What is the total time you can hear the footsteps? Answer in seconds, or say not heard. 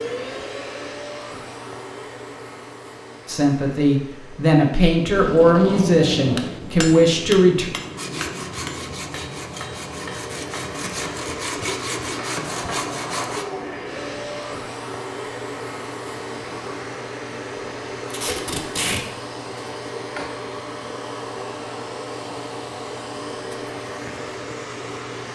not heard.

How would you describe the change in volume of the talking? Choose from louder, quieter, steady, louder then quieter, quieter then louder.
steady.